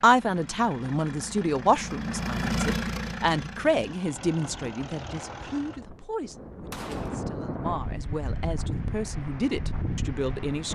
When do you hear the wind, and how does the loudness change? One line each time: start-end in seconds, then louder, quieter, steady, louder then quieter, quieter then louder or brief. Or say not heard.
4.0-10.7 louder.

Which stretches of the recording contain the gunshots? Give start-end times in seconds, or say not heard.
6.7-7.3.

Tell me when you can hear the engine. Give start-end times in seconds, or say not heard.
0.0-5.8.